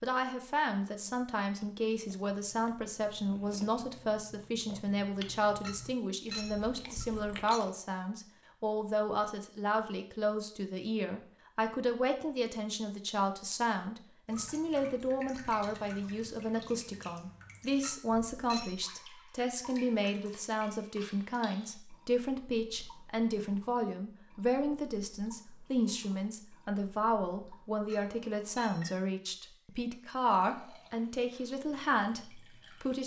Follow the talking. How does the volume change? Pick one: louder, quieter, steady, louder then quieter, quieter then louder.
steady.